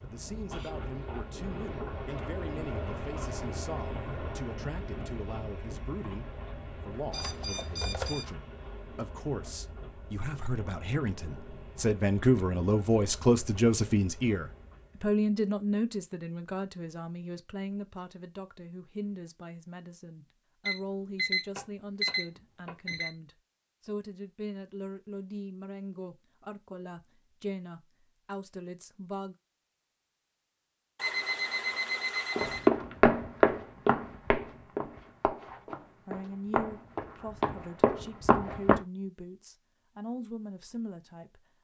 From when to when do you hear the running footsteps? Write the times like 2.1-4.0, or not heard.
32.4-38.8.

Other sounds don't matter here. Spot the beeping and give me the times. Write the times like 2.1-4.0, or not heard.
7.1-8.2, 20.6-23.1, 30.9-32.7.